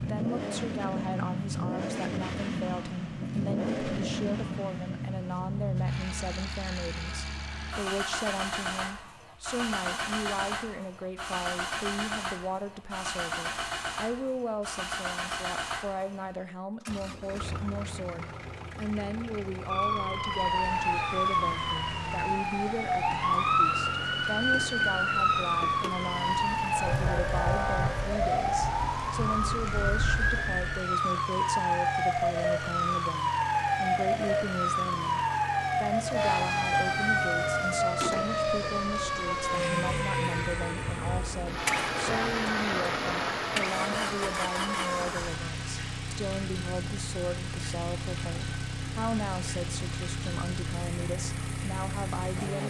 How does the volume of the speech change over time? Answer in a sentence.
The loudness of the speech stays about the same.